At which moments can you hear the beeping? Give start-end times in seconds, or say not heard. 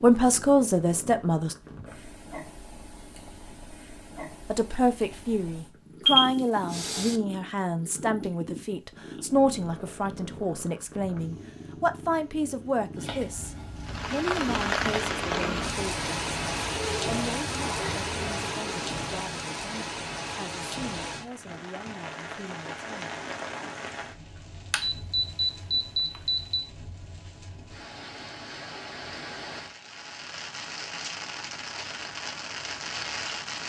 6.0-7.2, 24.7-26.6.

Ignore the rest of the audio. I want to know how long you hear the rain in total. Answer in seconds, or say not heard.
20 s.